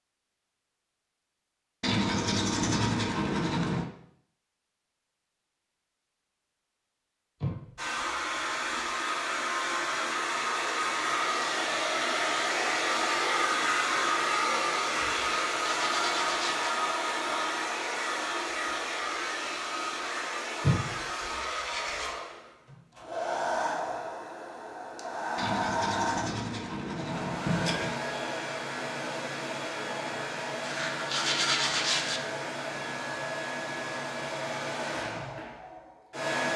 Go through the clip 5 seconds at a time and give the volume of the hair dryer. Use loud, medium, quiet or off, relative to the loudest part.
off, loud, loud, loud, medium, medium, medium, medium.